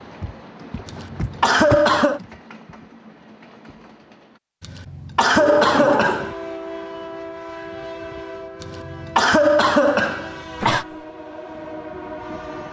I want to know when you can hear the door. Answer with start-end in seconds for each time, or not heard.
0.2-2.4, 5.3-6.3, 10.6-11.1.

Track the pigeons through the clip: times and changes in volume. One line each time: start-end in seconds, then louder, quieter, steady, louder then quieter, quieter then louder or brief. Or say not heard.
not heard.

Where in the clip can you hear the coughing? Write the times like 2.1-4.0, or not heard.
0.8-2.2, 4.6-6.3, 8.6-10.8.